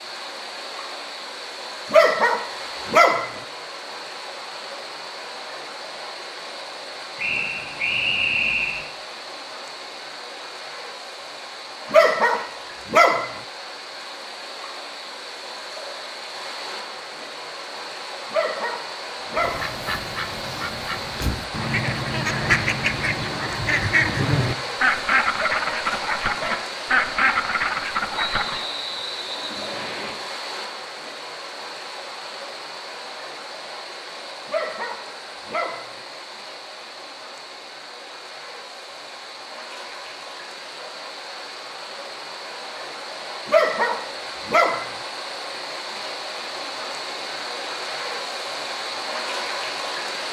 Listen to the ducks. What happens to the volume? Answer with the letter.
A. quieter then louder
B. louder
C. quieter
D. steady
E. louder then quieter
B.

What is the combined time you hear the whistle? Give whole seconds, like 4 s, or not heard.
4 s.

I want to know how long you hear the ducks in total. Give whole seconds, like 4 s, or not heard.
9 s.